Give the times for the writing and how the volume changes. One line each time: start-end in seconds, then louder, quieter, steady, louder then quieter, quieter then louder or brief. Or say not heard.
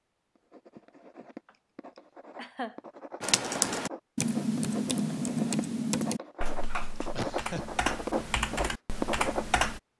0.3-9.7 louder.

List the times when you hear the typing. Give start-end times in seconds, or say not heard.
3.2-9.8.